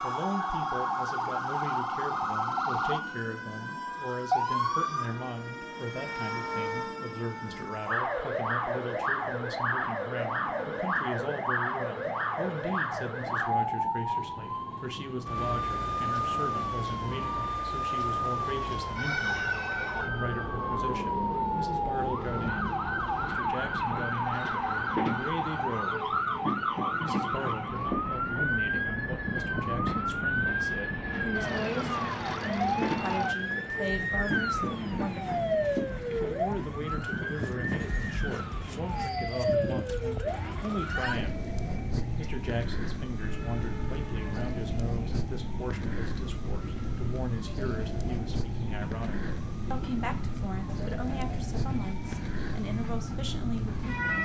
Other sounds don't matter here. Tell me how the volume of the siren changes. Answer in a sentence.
The loudness of the siren goes down.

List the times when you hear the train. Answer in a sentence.
The train can be heard from 0.0 to 54.2 s.